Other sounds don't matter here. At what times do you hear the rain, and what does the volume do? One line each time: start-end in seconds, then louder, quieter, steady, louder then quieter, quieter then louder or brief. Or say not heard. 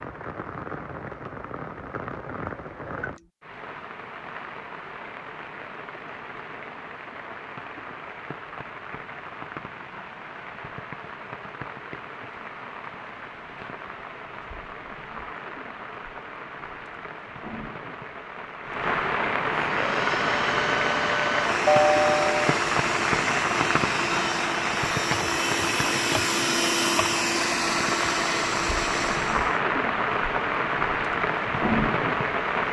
0.0-32.6 louder.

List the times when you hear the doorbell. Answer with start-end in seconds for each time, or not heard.
21.6-22.6.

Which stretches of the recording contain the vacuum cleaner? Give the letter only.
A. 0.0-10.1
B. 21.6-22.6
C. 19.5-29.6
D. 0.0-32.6
C.